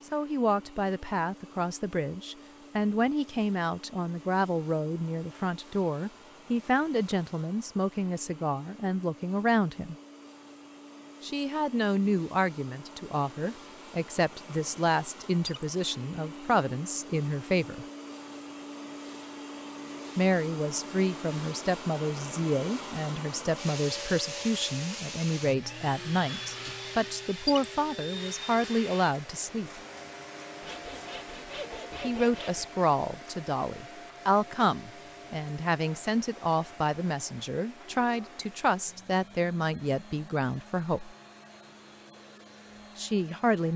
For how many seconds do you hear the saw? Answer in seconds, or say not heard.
2 s.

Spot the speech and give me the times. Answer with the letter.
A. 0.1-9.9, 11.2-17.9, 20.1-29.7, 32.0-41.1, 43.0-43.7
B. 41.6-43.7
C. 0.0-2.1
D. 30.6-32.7
A.